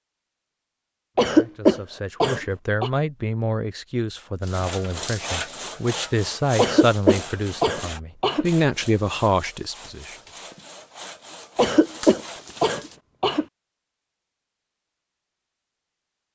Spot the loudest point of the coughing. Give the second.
2 s.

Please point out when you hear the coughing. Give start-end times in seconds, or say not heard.
1.1-2.9, 6.5-8.4, 11.6-13.4.